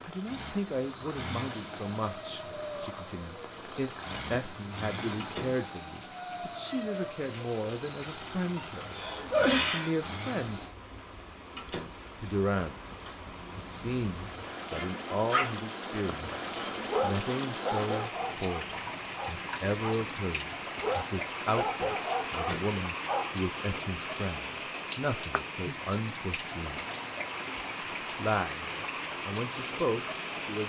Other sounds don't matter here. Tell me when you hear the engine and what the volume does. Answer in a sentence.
The engine can be heard from 0.0 to 10.8 s, at a steady volume.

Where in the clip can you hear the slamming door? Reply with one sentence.
The slamming door can be heard from 5.2 to 5.7 s, from 11.6 to 12.0 s and from 22.3 to 22.8 s.